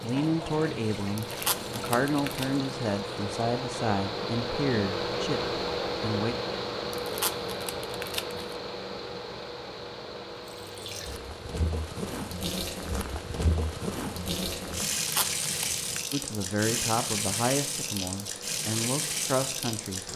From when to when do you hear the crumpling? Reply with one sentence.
You can hear the crumpling from 1.1 to 2.5 s, from 6.9 to 8.6 s and from 14.9 to 16.1 s.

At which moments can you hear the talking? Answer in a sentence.
The talking can be heard from 0.0 to 6.3 s and from 16.1 to 20.1 s.